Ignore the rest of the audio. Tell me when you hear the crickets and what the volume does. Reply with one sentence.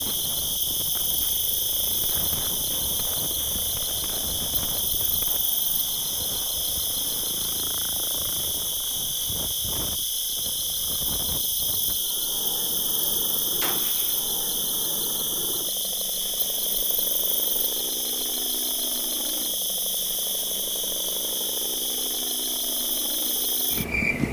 You can hear the crickets from 0.0 to 24.2 s, at a steady volume.